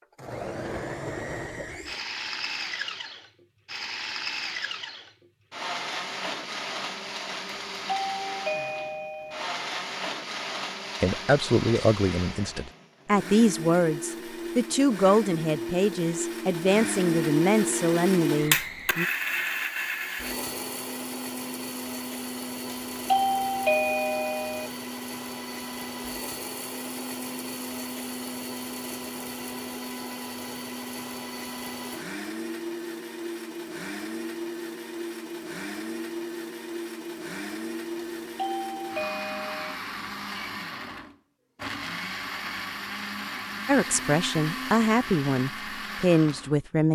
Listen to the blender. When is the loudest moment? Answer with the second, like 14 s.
18 s.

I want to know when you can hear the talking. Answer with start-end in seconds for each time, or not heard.
11.0-19.1, 43.6-46.8.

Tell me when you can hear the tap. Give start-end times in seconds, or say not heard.
not heard.